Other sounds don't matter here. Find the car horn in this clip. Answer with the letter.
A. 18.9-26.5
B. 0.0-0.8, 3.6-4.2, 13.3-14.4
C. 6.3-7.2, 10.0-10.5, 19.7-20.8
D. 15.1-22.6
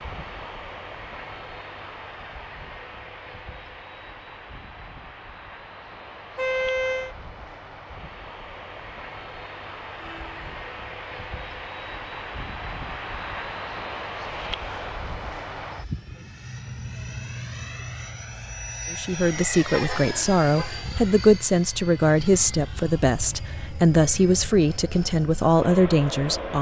C.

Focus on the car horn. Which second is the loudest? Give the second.
7 s.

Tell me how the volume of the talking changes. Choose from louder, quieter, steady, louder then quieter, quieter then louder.
steady.